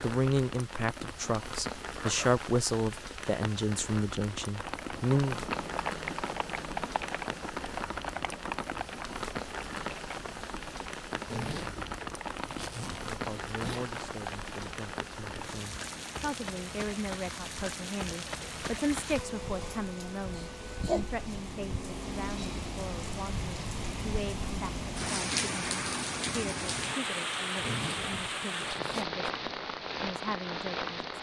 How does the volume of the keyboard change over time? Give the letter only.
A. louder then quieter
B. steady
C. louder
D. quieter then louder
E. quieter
E.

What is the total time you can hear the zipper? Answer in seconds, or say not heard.
5 s.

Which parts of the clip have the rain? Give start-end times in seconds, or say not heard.
0.0-31.1.